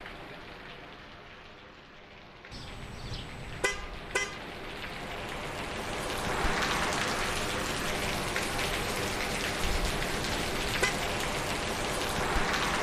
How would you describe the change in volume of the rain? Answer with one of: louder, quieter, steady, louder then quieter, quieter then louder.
louder.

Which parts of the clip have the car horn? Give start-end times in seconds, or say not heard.
2.5-4.4, 9.7-10.9.